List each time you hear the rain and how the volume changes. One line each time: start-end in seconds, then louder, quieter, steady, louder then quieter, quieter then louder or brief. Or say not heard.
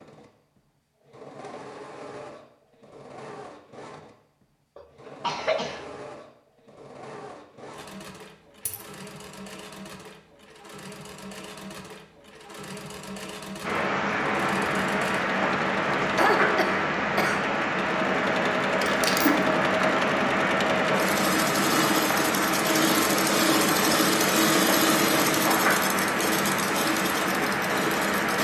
13.6-28.3 steady.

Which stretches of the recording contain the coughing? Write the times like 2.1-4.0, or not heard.
4.8-5.8, 16.0-17.5.